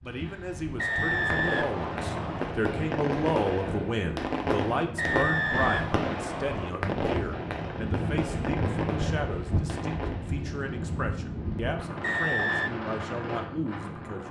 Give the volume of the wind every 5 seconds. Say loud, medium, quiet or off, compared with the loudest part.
medium, loud, loud.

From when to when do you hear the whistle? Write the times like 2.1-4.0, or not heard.
0.8-2.5, 5.0-6.7, 12.0-12.7.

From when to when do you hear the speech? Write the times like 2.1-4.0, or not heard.
0.0-14.2.